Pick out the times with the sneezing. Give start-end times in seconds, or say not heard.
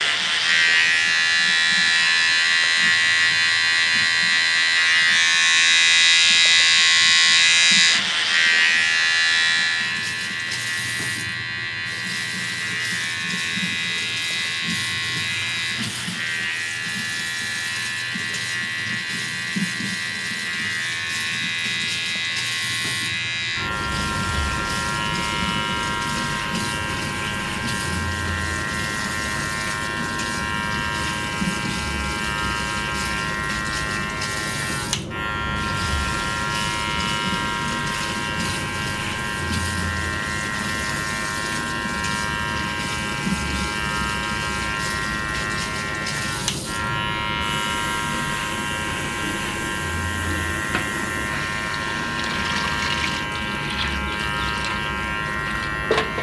not heard.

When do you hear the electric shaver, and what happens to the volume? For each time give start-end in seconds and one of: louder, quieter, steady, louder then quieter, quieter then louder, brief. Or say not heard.
0.0-56.1 quieter.